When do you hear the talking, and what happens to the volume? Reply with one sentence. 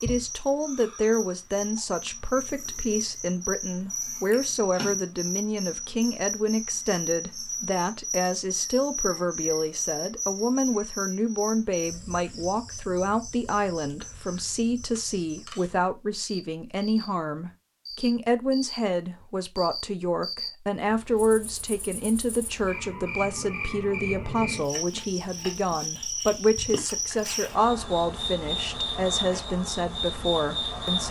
The talking can be heard from 0.0 to 31.0 s, at a steady volume.